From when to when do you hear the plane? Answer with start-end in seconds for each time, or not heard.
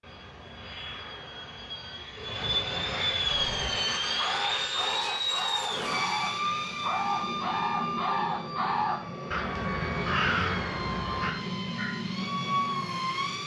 0.0-13.4.